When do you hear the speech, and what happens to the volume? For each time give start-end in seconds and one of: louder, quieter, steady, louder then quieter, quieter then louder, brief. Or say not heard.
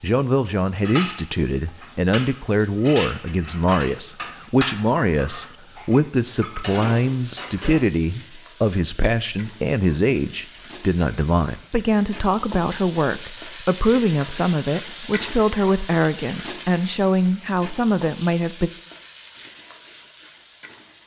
0.0-18.7 steady.